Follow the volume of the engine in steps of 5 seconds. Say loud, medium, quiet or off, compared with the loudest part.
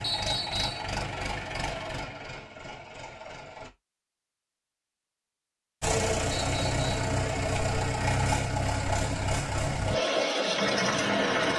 medium, loud, loud.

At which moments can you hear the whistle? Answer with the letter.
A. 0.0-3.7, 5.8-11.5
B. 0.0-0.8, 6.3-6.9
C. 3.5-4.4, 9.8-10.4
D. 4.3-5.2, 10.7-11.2
B.